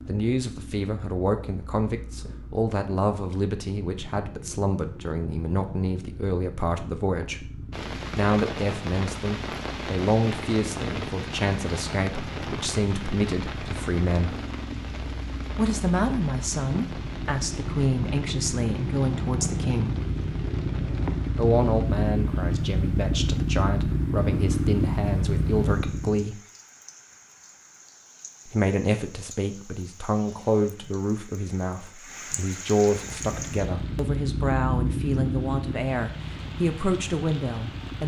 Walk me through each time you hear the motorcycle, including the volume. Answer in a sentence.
The motorcycle can be heard from 0.0 to 26.2 s, getting louder; and from 32.9 to 38.0 s, getting louder then quieter.